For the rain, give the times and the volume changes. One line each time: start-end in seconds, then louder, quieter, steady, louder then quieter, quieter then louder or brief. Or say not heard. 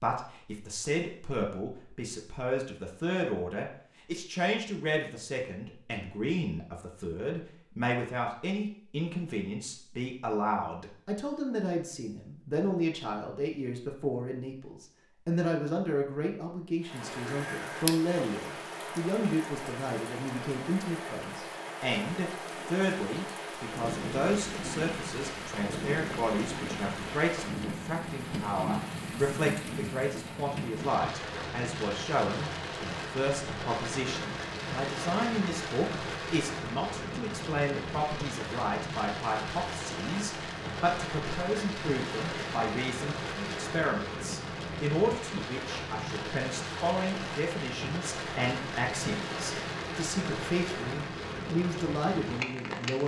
16.8-53.0 steady.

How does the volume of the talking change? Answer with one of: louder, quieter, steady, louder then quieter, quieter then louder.
steady.